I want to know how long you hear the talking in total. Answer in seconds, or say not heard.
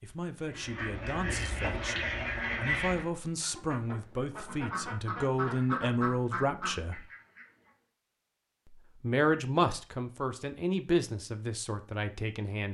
11 s.